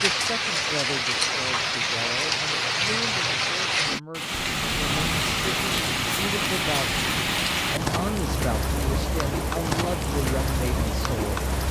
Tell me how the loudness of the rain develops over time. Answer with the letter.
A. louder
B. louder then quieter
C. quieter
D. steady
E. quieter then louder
D.